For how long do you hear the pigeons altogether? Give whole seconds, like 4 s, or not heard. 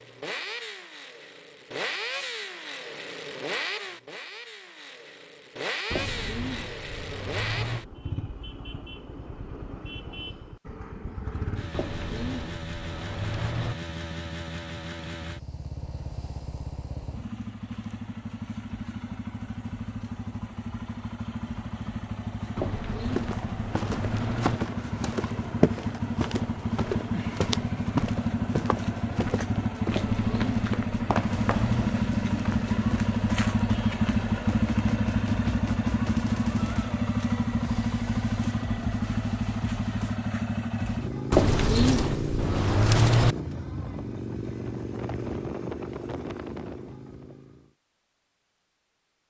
10 s.